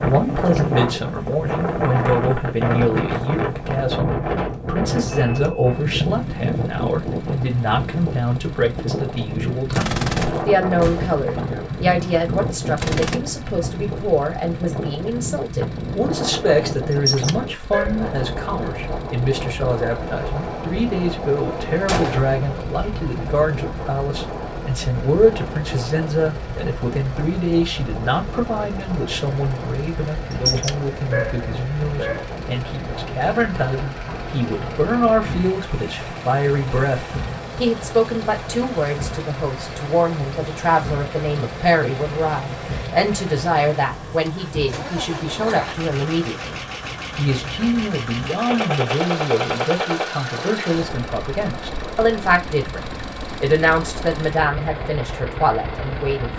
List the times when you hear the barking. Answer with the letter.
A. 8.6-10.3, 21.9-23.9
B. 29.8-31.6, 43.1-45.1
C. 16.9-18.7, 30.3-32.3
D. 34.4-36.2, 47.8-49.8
C.